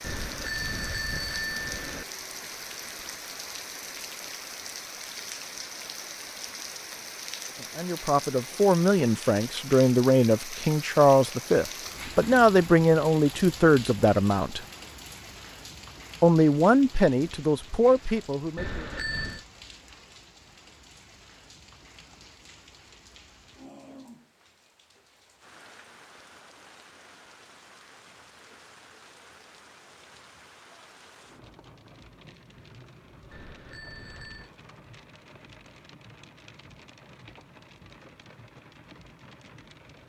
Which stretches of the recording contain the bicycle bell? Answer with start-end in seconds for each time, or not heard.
0.0-2.0, 18.6-19.4, 33.3-34.5.